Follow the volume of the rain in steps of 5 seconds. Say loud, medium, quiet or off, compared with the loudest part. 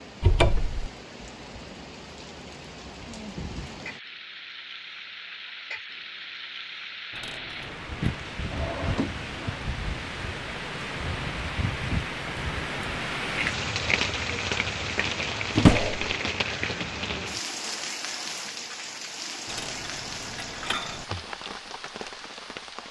medium, medium, loud, loud, medium.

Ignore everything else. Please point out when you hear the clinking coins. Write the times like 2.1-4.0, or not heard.
7.1-8.1, 19.4-21.1.